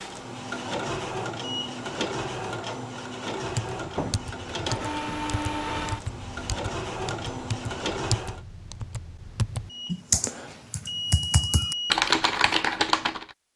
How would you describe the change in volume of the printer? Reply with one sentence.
The volume of the printer stays about the same.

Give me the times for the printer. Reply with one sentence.
The printer can be heard from 0.0 to 8.4 s.